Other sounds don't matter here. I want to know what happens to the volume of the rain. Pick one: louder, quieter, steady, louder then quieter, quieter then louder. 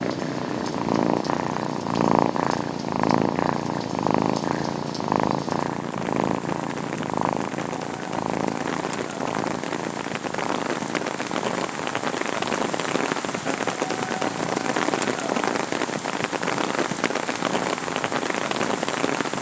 louder.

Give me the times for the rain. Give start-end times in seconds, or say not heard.
0.0-19.3.